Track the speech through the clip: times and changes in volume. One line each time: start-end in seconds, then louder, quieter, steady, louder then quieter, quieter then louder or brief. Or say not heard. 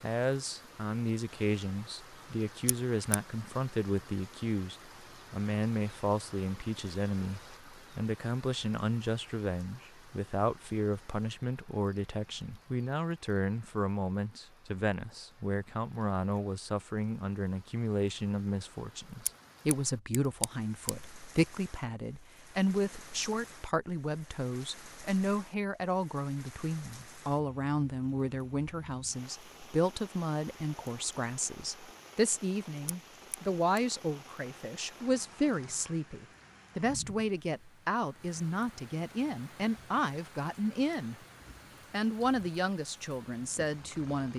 0.0-41.1 steady
41.9-44.3 brief.